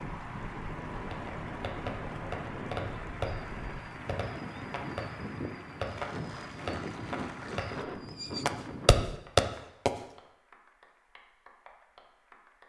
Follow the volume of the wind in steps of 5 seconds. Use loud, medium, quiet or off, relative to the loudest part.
loud, loud, off.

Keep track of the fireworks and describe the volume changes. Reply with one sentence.
The volume of the fireworks goes down, then up.